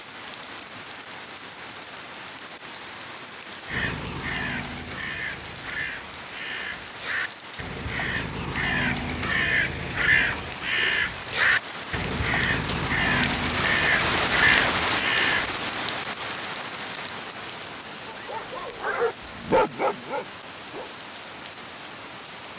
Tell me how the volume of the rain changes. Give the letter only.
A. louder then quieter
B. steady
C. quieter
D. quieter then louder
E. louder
A.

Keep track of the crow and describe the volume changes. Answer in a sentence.
The loudness of the crow goes up.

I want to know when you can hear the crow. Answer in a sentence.
The crow can be heard from 3.6 to 15.7 s.